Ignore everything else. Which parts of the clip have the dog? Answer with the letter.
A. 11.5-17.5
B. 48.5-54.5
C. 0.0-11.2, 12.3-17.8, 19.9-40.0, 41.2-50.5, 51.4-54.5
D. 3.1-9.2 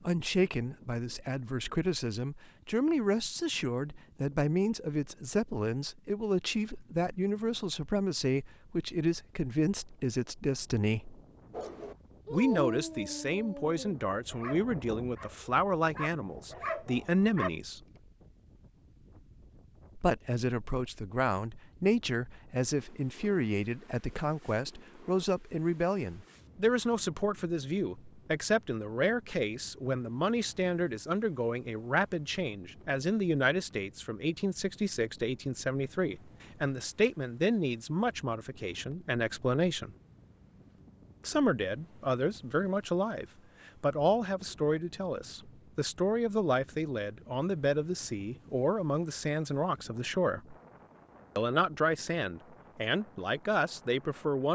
A.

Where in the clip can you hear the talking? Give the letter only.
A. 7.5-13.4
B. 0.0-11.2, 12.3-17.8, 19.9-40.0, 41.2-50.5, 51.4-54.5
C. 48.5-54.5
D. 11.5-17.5
B.